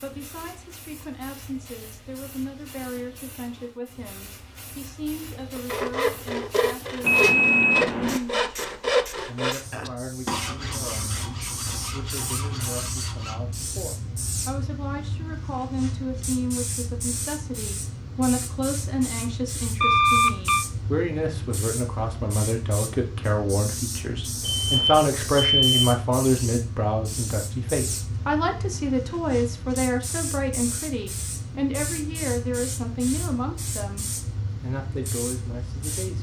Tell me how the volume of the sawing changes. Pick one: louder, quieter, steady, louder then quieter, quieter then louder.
quieter.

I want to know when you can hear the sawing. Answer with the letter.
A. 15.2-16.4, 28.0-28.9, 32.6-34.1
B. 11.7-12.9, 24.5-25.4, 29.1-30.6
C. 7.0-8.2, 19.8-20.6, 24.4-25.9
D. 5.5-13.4
D.